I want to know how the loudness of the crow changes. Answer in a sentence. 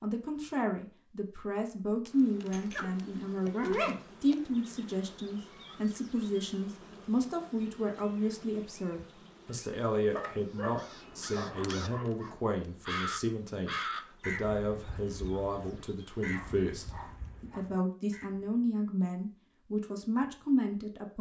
The volume of the crow goes up, then down.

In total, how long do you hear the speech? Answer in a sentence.
The speech can be heard for 21 seconds in total.